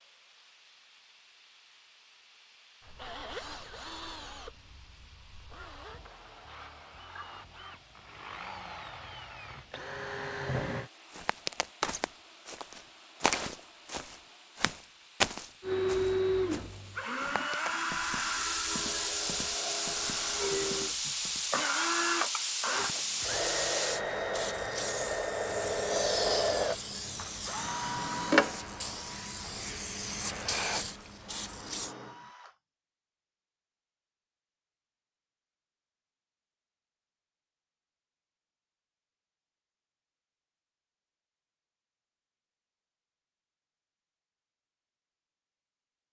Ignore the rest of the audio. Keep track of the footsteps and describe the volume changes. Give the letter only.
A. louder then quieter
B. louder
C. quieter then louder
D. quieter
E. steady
D.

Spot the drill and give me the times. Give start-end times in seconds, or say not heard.
2.9-10.9, 15.6-32.6.